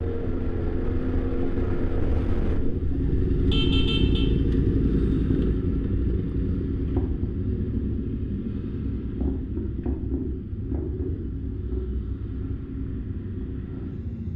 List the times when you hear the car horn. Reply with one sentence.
The car horn can be heard from 3.5 to 4.2 s.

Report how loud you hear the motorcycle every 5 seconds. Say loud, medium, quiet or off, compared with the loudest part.
loud, loud, medium.